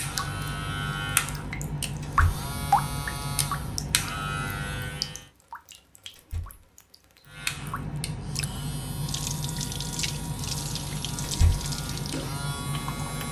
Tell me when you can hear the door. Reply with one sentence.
You can hear the door from 2.0 to 2.5 s, from 6.2 to 6.7 s and from 11.2 to 11.7 s.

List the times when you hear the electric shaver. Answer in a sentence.
You can hear the electric shaver from 0.0 to 5.3 s and from 7.2 to 13.2 s.